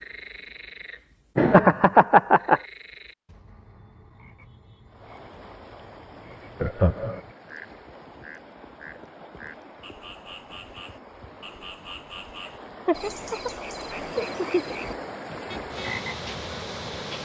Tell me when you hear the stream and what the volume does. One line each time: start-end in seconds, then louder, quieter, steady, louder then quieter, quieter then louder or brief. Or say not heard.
4.8-17.1 louder.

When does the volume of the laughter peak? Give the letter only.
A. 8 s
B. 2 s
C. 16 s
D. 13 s
B.